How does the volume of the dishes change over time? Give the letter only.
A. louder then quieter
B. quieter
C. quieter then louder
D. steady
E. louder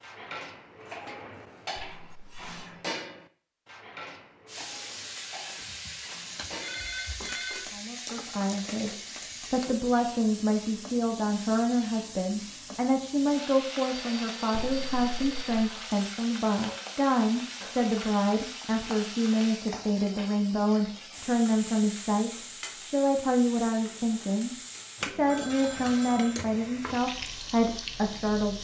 B.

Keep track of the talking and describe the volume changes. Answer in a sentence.
The volume of the talking stays about the same.